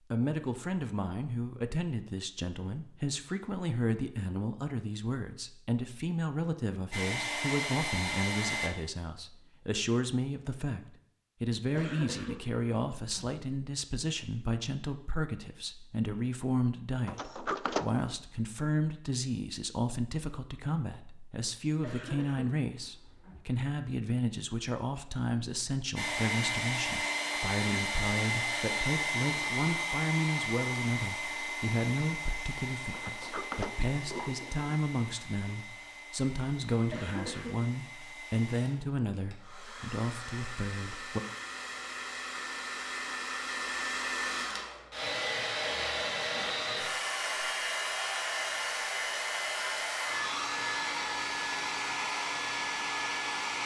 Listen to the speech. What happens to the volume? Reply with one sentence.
The volume of the speech stays about the same.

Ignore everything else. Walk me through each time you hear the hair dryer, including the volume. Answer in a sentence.
You can hear the hair dryer briefly from 6.9 to 8.7 s; and from 25.9 to 53.6 s, getting quieter then louder.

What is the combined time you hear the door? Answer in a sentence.
You can hear the door for 3 seconds altogether.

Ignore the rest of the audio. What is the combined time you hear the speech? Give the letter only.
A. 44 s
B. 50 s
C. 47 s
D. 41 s
D.